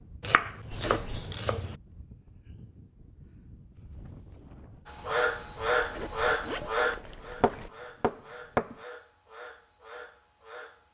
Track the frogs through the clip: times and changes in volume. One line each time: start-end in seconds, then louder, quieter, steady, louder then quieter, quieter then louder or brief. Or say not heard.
4.8-10.8 quieter.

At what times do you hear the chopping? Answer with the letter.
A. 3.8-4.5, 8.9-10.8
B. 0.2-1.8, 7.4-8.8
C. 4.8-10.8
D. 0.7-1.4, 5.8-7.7
B.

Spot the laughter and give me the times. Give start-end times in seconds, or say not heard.
not heard.